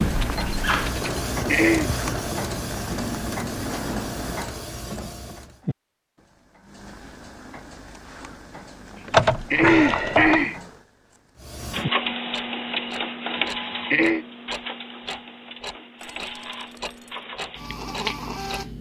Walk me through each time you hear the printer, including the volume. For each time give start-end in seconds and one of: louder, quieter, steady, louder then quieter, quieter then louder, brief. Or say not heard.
0.0-5.6 quieter
11.4-18.7 quieter then louder.